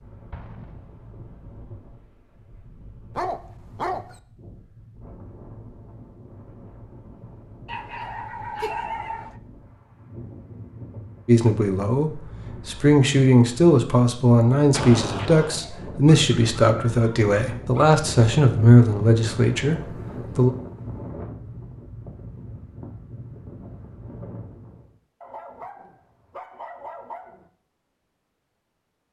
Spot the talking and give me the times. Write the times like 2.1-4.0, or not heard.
11.2-20.5.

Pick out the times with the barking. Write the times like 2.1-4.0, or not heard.
3.1-4.2, 7.7-9.3, 15.6-17.9, 25.2-27.5.